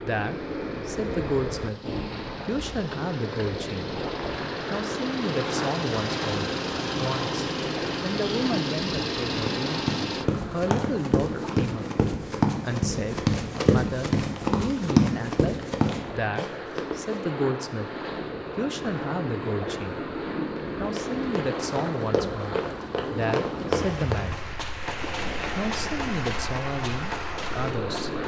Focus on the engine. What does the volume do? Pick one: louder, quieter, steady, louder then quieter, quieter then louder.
louder.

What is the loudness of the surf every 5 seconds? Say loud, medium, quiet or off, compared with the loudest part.
loud, loud, medium, loud, loud, loud.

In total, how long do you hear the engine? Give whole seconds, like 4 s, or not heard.
10 s.